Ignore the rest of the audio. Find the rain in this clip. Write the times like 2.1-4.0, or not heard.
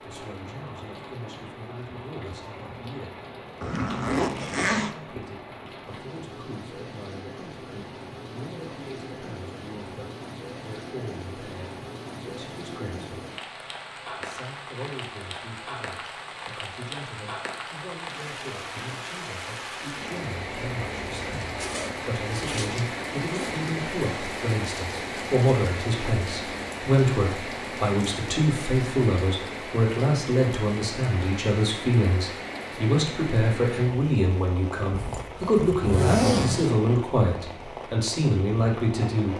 0.0-39.3.